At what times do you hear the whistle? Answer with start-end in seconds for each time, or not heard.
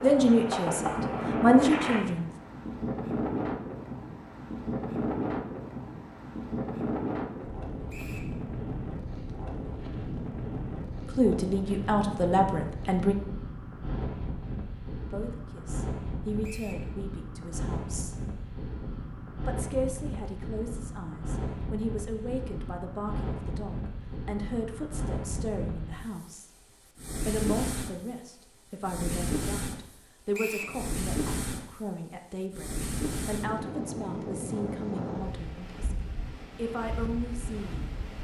7.9-8.3, 16.4-16.9, 30.3-30.8.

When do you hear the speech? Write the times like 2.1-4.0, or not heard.
0.0-2.3, 11.1-13.2, 15.1-18.1, 19.4-26.5, 27.2-38.0.